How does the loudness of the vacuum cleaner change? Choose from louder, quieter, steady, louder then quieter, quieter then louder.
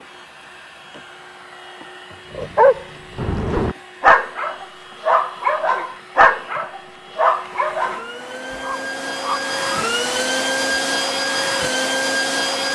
louder.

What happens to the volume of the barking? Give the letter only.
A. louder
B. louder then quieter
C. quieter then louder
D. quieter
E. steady
B.